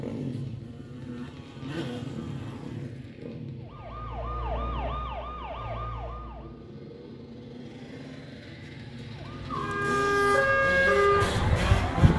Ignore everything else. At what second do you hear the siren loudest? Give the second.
11 s.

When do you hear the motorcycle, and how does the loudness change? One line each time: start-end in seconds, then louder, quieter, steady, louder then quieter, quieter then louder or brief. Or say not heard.
0.0-12.1 quieter then louder.